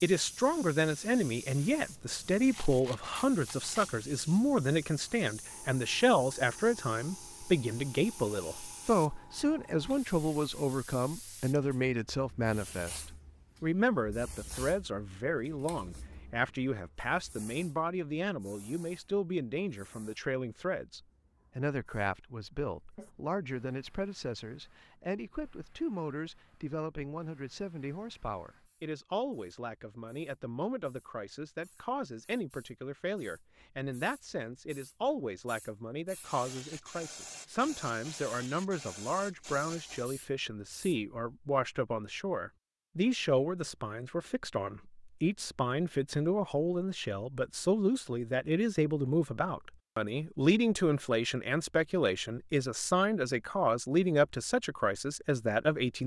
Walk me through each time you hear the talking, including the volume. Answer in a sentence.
The talking can be heard from 0.0 to 56.0 s, getting quieter then louder.